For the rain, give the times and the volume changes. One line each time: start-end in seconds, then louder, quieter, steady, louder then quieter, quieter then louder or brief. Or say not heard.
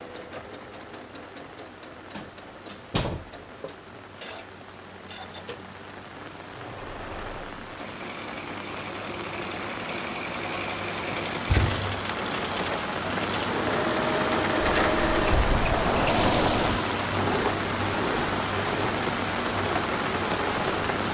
0.0-21.0 louder.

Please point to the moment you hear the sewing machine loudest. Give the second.
15 s.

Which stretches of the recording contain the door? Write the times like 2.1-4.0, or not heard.
2.1-3.2, 11.4-11.9, 14.6-16.8.